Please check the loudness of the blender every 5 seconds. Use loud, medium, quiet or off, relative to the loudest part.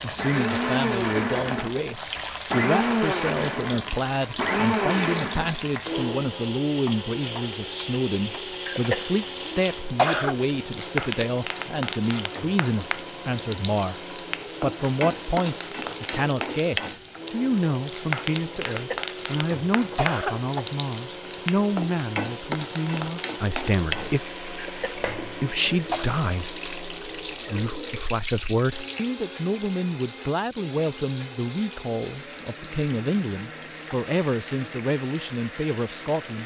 loud, medium, quiet, quiet, quiet, quiet, quiet, quiet.